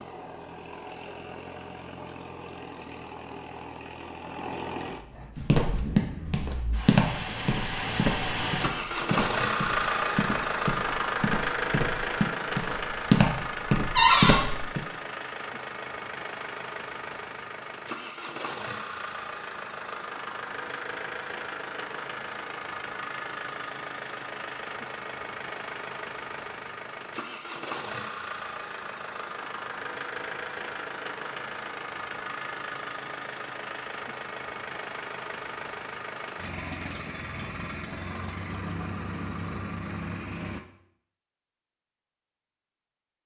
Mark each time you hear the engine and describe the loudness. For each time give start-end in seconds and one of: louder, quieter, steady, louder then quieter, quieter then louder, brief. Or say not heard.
0.0-40.6 louder then quieter.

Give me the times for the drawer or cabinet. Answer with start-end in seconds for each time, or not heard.
13.9-14.4.